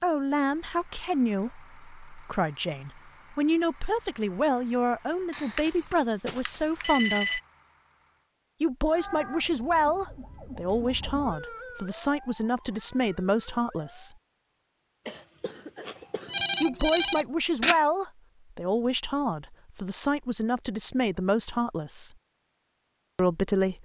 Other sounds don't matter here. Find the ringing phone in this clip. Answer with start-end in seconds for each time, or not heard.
5.3-7.4, 16.2-17.8.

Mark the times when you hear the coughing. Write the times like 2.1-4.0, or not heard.
15.1-16.4.